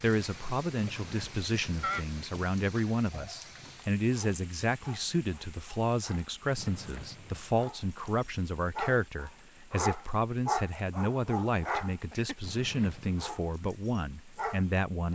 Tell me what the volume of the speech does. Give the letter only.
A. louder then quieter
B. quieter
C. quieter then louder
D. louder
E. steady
E.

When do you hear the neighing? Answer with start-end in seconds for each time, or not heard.
0.8-2.0, 6.5-7.5, 12.4-13.3.